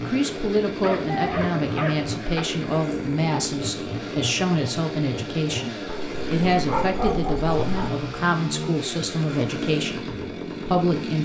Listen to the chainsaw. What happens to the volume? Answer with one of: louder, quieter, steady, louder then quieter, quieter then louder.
steady.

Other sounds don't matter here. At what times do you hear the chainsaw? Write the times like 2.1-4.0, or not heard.
0.0-11.2.